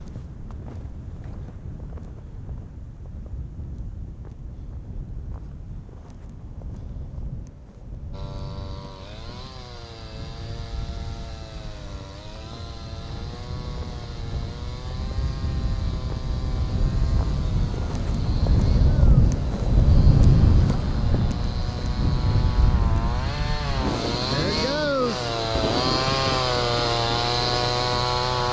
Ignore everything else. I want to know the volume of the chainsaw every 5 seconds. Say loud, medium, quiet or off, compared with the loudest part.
off, quiet, quiet, quiet, medium, loud.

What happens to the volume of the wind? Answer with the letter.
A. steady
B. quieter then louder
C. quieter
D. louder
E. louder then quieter
E.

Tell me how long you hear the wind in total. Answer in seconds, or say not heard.
28 s.